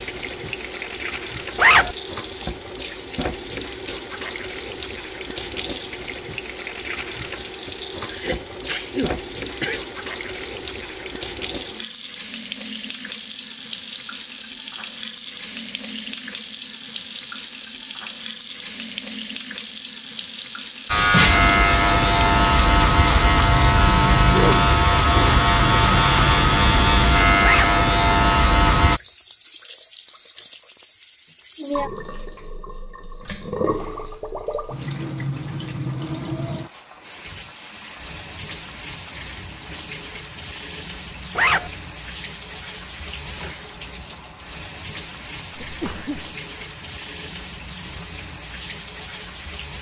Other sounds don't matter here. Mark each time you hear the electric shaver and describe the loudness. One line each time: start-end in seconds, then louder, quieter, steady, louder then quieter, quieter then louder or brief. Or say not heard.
20.9-29.0 steady.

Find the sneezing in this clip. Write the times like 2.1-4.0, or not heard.
8.1-9.8, 24.2-25.4, 45.6-46.4.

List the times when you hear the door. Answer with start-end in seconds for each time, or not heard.
not heard.